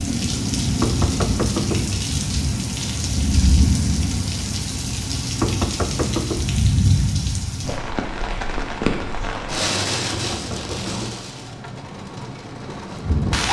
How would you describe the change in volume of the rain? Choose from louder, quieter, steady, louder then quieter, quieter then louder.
quieter.